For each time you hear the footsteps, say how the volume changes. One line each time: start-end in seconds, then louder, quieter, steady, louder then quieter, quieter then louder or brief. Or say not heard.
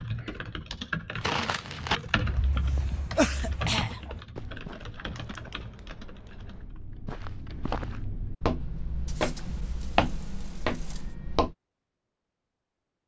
1.2-11.6 quieter then louder.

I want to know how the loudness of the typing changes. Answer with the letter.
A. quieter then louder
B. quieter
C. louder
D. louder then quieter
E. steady
B.